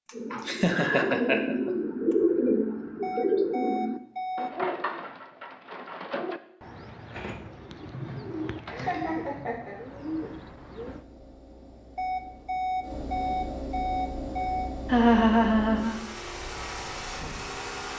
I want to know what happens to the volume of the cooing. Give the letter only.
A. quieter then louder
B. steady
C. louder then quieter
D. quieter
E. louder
D.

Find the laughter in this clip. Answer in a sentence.
You can hear the laughter from 0.5 to 1.7 s, from 7.9 to 9.8 s and from 14.8 to 16.0 s.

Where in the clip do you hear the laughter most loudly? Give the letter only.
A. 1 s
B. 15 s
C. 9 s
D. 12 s
B.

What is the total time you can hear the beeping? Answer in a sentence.
The beeping can be heard for 4 seconds in total.